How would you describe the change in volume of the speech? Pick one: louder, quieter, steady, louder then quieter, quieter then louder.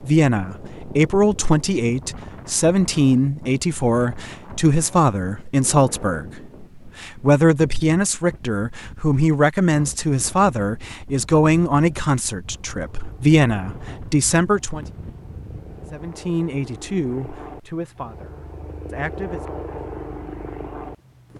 quieter.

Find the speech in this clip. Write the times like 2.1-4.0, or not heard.
0.0-14.8, 15.9-19.4.